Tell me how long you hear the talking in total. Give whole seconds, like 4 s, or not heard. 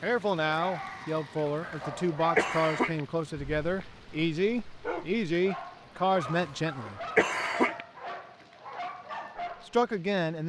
8 s.